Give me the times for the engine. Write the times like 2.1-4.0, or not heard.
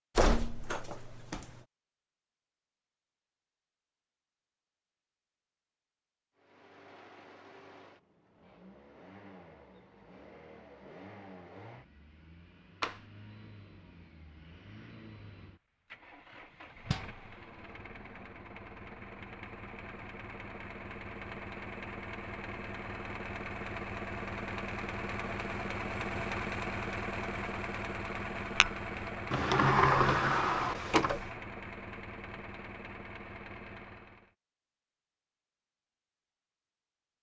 6.3-34.3.